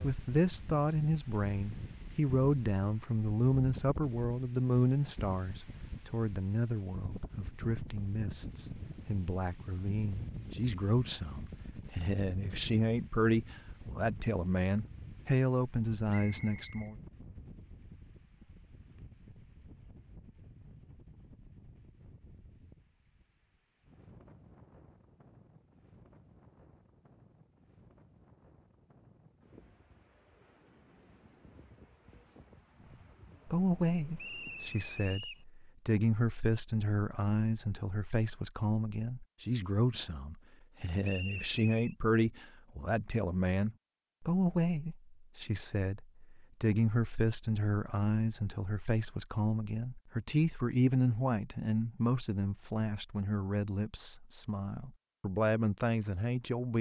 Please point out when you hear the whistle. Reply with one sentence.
The whistle can be heard from 16.1 to 16.9 s, from 34.1 to 35.5 s and from 41.0 to 42.0 s.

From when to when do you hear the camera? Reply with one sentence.
The camera can't be heard in this clip.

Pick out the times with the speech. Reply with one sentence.
You can hear the speech from 0.0 to 16.9 s and from 33.5 to 56.7 s.